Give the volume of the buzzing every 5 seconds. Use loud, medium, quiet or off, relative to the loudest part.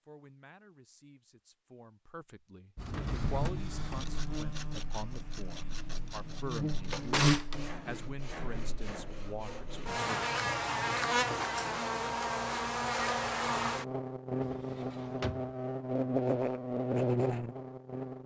medium, loud, loud, loud.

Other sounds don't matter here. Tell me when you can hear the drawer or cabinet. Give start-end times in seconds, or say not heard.
2.8-4.3, 6.8-7.5, 14.4-15.5.